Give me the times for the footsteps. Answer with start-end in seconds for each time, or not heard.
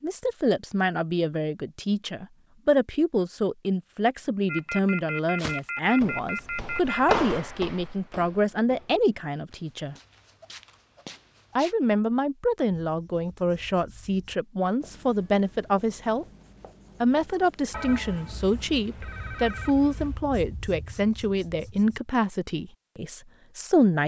5.3-11.8.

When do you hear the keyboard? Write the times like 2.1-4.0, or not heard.
not heard.